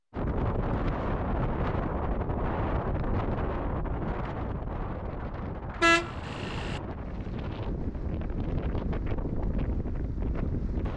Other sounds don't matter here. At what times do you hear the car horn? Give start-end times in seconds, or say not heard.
5.8-6.8.